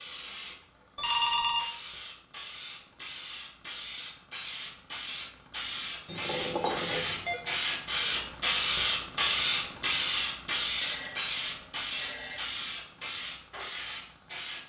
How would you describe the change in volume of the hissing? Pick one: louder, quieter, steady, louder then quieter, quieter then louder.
louder then quieter.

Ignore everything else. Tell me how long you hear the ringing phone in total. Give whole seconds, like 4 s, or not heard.
4 s.